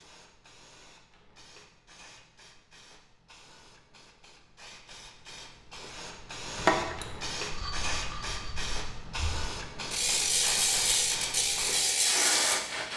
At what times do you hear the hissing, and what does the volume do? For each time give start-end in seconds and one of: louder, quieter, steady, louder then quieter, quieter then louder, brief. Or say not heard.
0.0-12.9 louder.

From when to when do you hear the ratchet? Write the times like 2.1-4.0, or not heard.
6.5-12.6.